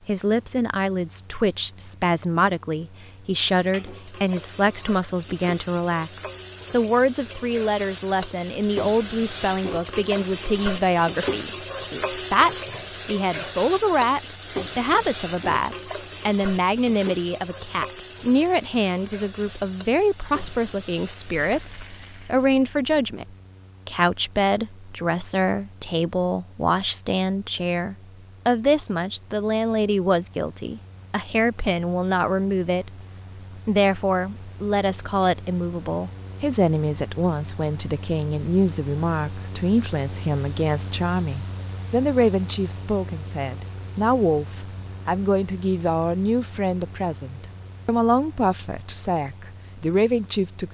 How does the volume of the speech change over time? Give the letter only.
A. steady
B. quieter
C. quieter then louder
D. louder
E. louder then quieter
A.